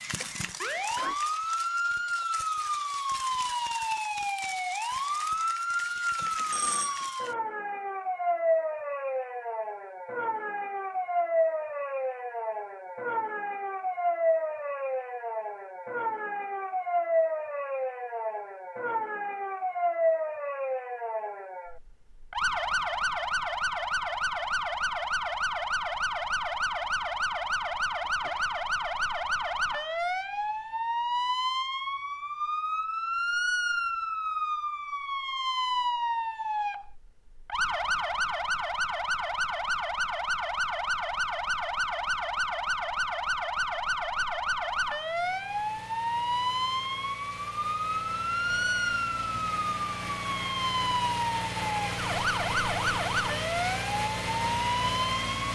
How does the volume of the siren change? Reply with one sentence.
The loudness of the siren stays about the same.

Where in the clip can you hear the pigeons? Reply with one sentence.
The pigeons can't be heard in this clip.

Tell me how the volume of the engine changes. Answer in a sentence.
The loudness of the engine goes up.